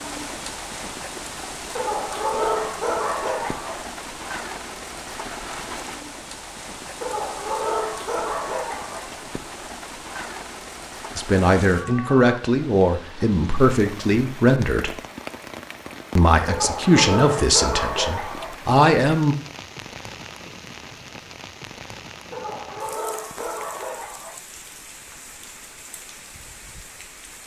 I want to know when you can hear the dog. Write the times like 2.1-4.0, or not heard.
1.8-3.8, 7.0-9.0, 16.4-18.5, 22.3-24.4.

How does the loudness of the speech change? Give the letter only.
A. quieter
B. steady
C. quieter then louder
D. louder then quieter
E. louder
B.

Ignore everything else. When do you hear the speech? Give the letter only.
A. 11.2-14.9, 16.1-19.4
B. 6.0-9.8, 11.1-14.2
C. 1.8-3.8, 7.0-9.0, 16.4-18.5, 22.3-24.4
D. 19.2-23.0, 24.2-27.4
A.